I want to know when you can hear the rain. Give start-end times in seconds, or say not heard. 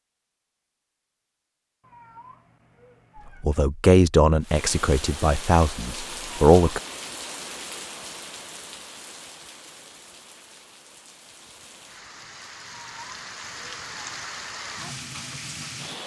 4.4-16.0.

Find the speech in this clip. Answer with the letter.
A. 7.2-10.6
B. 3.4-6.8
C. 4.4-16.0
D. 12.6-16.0
B.